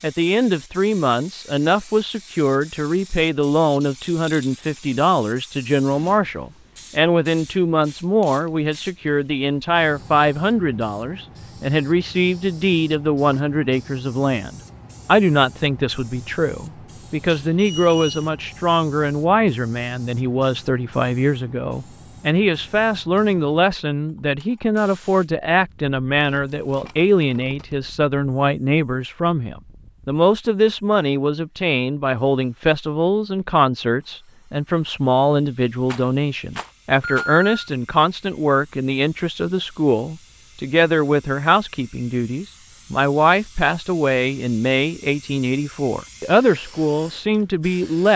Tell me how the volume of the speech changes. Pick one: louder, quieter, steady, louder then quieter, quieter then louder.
steady.